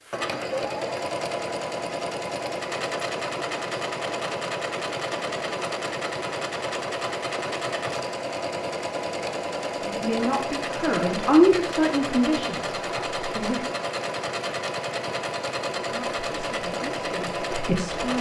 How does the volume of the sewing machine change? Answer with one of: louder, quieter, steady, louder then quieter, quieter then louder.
steady.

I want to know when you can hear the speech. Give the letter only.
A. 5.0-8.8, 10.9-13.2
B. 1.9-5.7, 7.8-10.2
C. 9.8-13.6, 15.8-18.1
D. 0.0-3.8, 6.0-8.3
C.